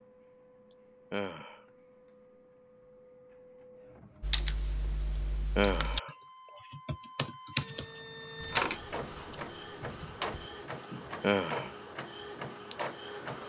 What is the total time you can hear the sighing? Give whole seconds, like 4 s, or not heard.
2 s.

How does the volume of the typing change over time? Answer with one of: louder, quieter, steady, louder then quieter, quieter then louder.
louder then quieter.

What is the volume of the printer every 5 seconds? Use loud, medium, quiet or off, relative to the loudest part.
quiet, loud, loud.